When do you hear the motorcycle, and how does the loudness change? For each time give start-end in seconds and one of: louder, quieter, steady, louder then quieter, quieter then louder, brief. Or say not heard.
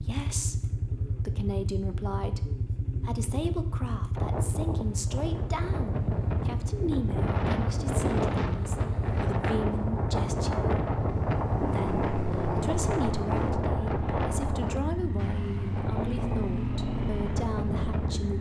0.0-18.3 steady.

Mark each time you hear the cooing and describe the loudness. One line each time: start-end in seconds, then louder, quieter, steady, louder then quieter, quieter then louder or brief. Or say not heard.
not heard.